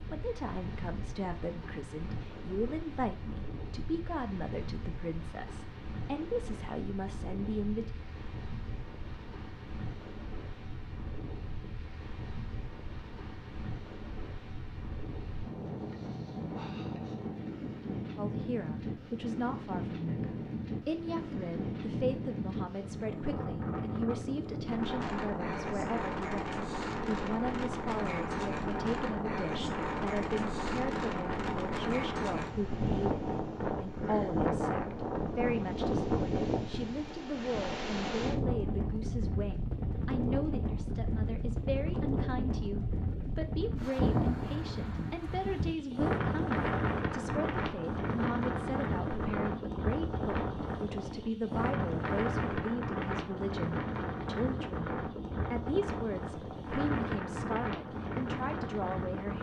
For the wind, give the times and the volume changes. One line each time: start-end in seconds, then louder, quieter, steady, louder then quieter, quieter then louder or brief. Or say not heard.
0.0-59.3 louder.